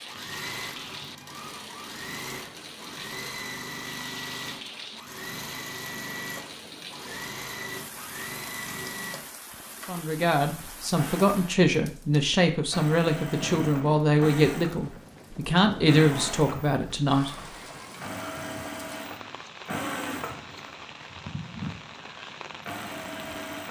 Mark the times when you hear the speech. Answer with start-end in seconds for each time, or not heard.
9.8-17.3.